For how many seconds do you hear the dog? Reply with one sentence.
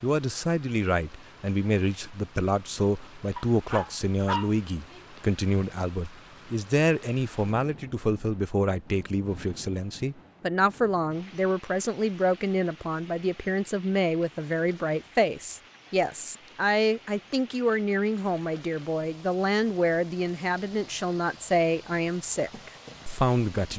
The dog can be heard for 2 seconds in total.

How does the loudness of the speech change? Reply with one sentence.
The volume of the speech stays about the same.